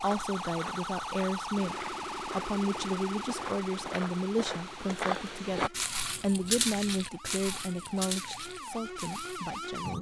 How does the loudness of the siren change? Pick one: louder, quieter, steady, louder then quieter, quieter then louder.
quieter then louder.